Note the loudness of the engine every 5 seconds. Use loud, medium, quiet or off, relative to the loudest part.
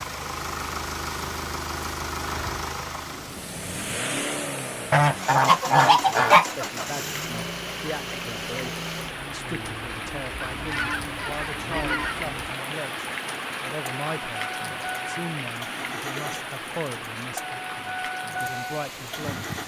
loud, loud, medium, loud.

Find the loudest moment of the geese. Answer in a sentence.
The volume of the geese peaks at 6 seconds.